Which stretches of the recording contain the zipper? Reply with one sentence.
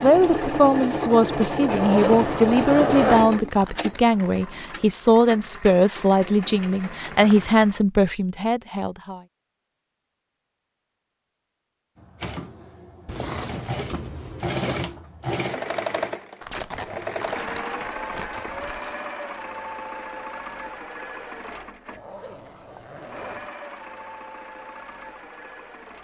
You can hear the zipper from 1.6 to 3.3 s, from 13.1 to 14.9 s and from 21.9 to 23.5 s.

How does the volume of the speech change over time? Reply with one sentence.
The volume of the speech stays about the same.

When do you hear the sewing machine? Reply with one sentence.
The sewing machine can be heard from 0.0 to 7.8 s and from 11.9 to 26.0 s.